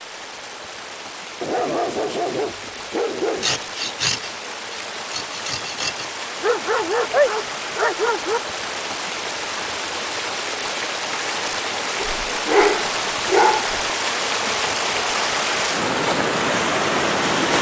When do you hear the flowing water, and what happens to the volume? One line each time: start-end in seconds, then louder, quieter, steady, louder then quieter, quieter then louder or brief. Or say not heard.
0.0-17.5 louder.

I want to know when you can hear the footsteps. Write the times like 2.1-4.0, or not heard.
not heard.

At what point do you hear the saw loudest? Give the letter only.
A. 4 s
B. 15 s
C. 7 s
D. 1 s
A.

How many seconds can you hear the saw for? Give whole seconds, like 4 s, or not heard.
3 s.